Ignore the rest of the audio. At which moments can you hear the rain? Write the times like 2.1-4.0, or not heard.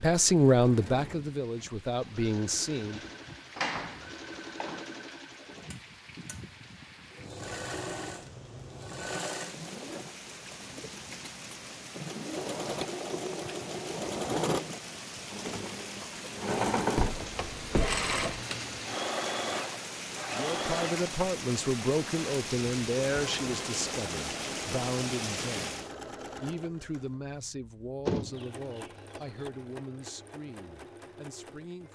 0.2-25.9.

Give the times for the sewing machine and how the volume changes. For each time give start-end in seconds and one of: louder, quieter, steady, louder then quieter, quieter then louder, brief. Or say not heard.
0.0-31.8 louder then quieter.